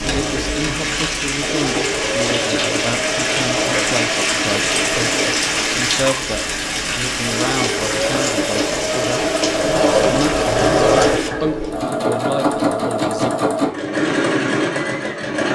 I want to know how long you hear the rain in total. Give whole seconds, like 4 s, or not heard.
11 s.